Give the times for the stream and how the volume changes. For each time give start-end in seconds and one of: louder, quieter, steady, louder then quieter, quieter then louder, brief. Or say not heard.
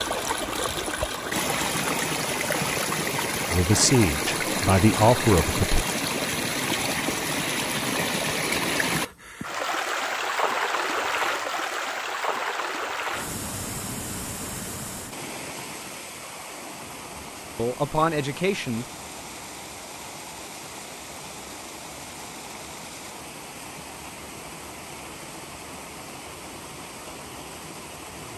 0.0-28.3 quieter.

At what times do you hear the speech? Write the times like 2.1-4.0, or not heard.
3.5-5.8, 17.4-18.9.